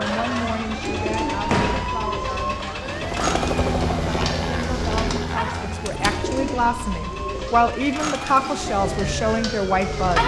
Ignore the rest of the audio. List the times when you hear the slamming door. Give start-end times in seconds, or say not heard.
1.4-1.9, 5.8-6.3.